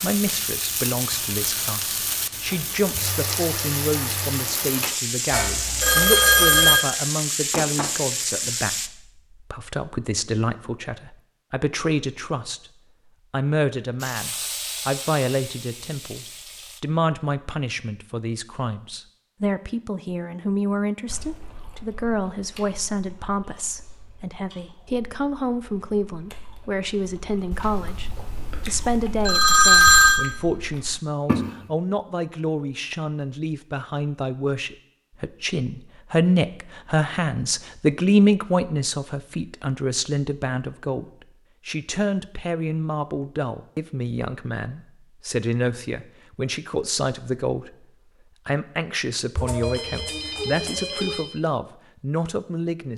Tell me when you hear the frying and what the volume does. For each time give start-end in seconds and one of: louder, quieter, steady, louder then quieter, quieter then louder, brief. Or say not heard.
0.0-8.9 steady
13.9-16.8 brief.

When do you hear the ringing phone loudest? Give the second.
30 s.